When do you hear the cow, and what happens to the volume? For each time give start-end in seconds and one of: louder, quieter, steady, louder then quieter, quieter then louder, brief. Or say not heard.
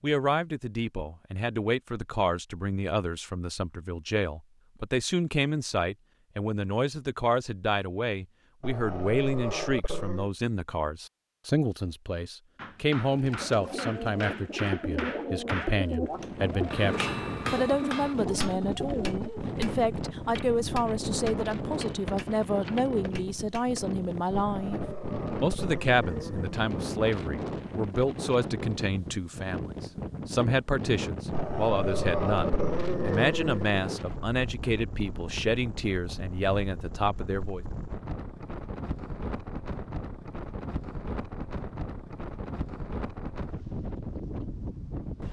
not heard.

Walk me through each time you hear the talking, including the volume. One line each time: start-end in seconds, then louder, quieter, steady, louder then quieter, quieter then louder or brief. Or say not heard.
0.0-24.8 steady
25.4-37.6 steady.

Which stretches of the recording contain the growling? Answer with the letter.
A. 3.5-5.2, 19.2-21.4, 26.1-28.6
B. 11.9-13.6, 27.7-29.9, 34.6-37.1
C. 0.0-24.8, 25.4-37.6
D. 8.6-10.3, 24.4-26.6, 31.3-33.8
D.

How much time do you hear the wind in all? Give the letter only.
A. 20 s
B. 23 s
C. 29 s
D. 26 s
C.